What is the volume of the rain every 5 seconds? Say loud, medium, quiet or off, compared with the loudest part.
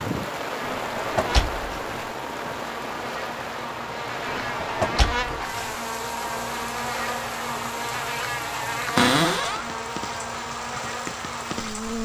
loud, medium, loud.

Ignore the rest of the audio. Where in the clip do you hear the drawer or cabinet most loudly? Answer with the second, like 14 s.
9 s.